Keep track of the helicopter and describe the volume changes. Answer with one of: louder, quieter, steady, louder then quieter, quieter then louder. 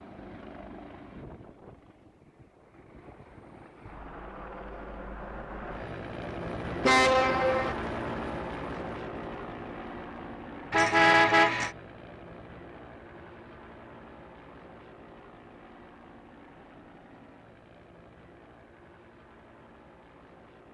louder then quieter.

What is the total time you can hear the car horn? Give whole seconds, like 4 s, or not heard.
2 s.